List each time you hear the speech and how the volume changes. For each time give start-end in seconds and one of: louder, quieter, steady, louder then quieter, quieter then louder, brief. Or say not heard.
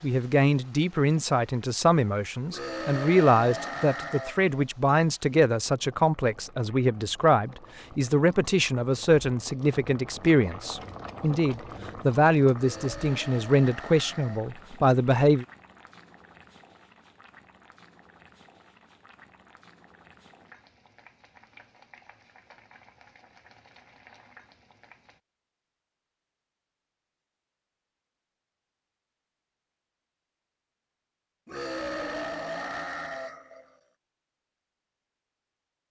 0.0-15.4 steady.